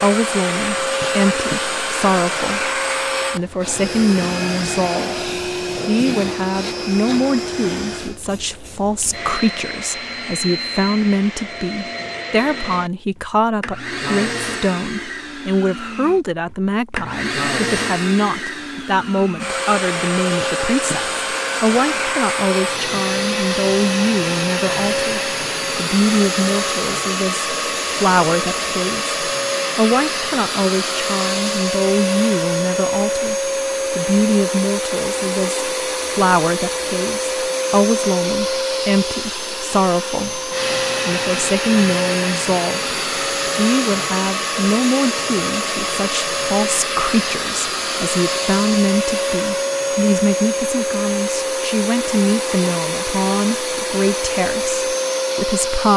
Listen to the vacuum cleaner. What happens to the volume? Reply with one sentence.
The loudness of the vacuum cleaner stays about the same.